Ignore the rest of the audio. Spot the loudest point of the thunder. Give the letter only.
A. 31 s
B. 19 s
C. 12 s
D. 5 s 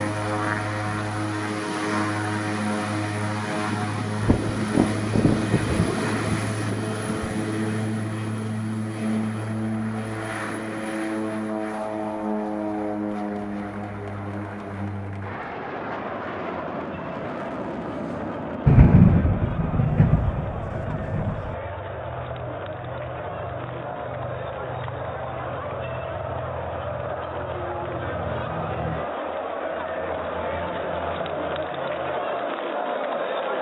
B.